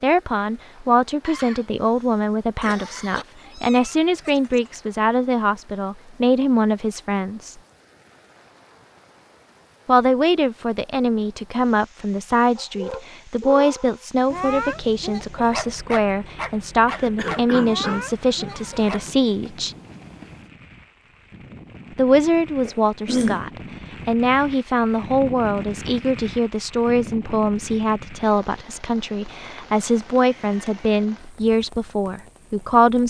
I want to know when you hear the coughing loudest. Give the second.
23 s.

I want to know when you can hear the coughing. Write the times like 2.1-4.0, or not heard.
1.2-3.2, 16.9-18.6, 22.6-23.4.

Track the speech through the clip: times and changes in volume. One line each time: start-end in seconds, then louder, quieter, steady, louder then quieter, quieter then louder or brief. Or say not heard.
0.0-7.5 steady
9.8-19.8 steady
21.9-33.0 steady.